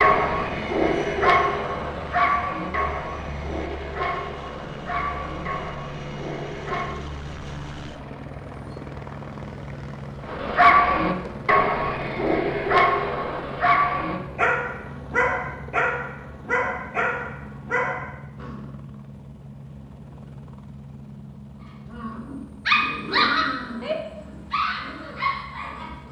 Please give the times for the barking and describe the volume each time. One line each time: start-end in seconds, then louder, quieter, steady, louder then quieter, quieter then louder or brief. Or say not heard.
0.0-7.0 quieter
10.2-18.6 quieter
21.9-26.0 quieter.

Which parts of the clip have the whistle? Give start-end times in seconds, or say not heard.
not heard.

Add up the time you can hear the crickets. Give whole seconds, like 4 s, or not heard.
not heard.